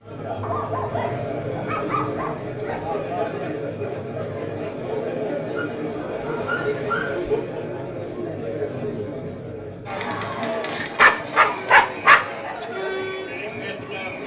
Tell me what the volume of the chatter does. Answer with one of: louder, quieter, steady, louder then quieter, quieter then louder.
steady.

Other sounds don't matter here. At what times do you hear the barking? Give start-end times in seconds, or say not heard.
0.4-2.9, 5.2-7.3, 10.7-12.7.